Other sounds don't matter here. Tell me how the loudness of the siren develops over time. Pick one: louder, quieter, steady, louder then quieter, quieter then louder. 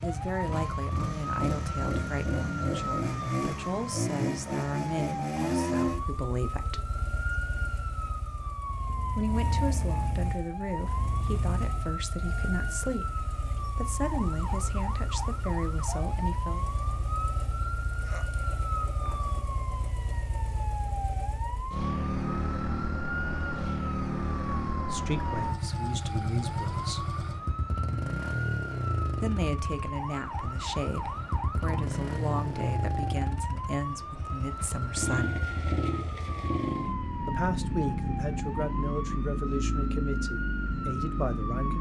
steady.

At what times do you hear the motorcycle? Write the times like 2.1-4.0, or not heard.
0.0-41.7.